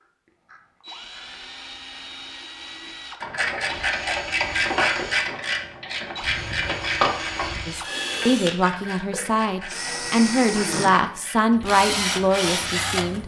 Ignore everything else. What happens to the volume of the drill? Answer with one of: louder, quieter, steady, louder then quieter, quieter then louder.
louder.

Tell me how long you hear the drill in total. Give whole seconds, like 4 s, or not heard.
13 s.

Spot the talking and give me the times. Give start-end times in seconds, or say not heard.
7.7-13.2.